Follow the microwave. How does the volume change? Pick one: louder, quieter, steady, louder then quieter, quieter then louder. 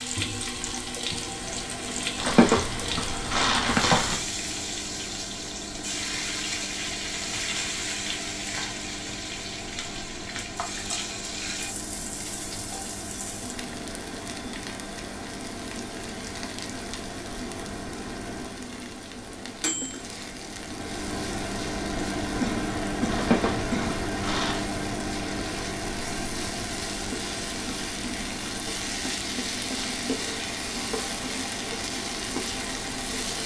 louder then quieter.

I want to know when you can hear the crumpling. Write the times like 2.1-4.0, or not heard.
2.1-4.2, 23.1-24.6.